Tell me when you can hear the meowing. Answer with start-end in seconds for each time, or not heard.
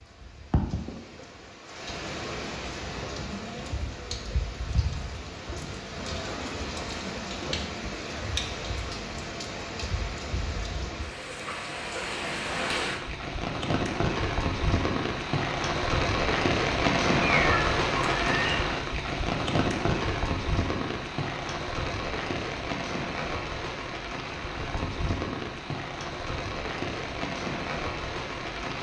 17.2-18.6.